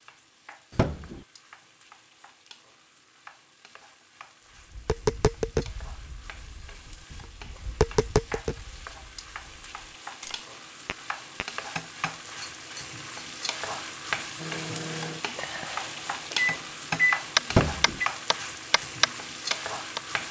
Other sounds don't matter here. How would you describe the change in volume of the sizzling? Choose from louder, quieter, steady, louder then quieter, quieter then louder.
louder.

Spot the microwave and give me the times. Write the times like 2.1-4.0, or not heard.
14.3-18.1.